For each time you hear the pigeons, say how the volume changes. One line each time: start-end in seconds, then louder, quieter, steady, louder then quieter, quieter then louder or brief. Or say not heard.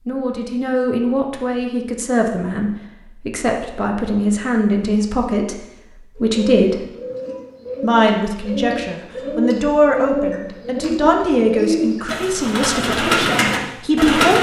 6.2-14.3 louder.